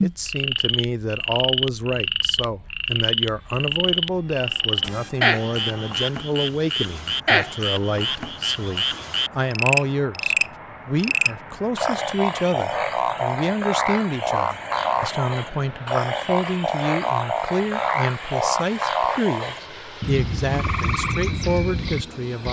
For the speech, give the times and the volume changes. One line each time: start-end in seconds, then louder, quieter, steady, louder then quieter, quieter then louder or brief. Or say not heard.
0.0-22.4 steady.